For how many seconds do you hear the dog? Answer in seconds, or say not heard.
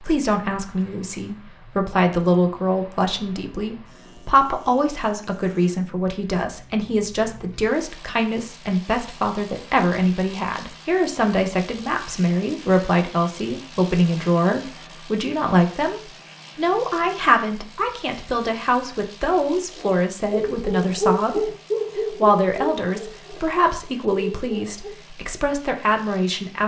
5 s.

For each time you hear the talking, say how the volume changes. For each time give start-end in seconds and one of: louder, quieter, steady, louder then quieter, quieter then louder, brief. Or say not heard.
0.0-26.6 steady.